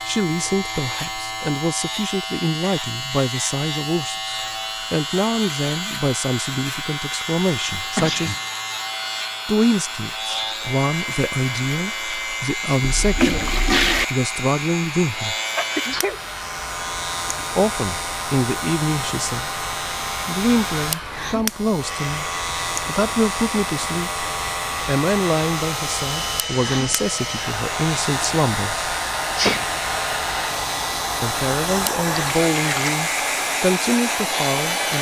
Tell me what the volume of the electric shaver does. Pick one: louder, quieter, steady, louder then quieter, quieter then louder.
steady.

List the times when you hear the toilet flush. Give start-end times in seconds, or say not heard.
12.8-14.1, 32.0-33.0.